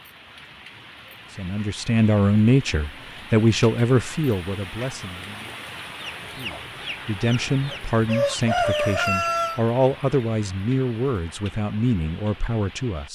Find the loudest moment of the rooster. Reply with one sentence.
The loudest moment of the rooster is at 9 seconds.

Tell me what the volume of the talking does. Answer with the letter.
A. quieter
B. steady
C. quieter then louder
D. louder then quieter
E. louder
A.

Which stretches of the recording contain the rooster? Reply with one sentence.
You can hear the rooster from 6.0 to 9.6 s.